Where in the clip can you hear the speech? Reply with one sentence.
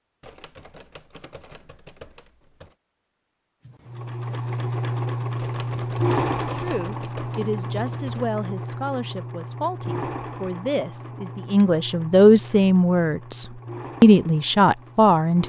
The speech can be heard from 6.5 to 15.4 s.